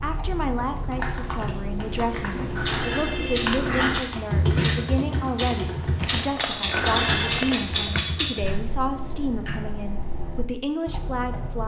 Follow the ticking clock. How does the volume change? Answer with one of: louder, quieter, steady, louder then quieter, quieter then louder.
louder then quieter.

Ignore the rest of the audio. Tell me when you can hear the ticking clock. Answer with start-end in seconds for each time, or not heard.
0.0-11.6.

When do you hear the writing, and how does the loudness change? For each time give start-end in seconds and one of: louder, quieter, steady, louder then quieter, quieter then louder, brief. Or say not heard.
not heard.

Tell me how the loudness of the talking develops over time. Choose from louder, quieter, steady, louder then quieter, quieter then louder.
steady.